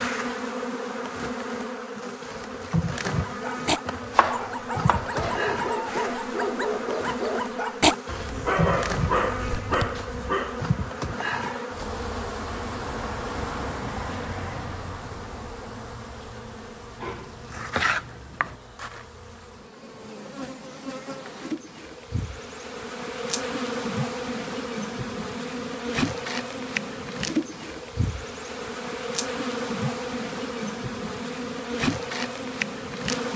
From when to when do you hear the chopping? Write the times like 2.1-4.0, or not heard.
3.9-5.4, 17.0-18.6.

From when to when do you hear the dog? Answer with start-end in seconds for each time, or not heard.
3.0-10.7.